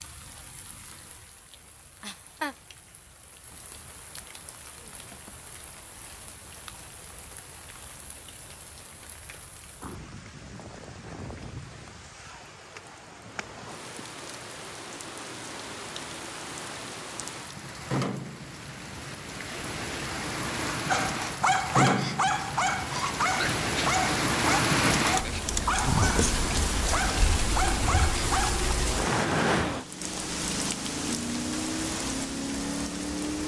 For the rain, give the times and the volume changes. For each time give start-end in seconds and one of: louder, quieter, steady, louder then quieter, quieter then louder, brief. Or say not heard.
0.0-33.4 louder.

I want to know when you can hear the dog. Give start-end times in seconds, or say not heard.
20.9-28.8.